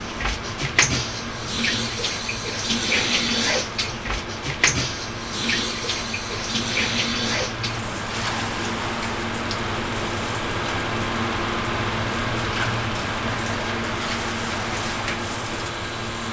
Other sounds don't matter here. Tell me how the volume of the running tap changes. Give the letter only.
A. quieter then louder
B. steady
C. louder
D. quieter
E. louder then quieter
D.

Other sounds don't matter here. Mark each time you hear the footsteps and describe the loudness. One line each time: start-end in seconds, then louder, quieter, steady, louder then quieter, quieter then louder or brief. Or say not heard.
not heard.